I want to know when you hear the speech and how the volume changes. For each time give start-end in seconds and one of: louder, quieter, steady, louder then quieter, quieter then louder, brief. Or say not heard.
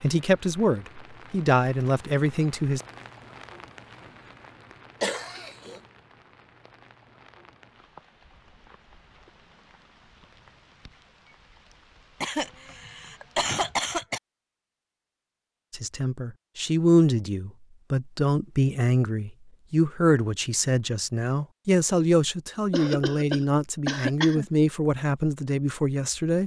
0.0-2.8 brief
15.7-26.4 steady.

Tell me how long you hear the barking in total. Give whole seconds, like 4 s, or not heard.
not heard.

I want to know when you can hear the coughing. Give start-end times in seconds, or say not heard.
5.0-5.8, 12.2-14.2, 22.7-24.4.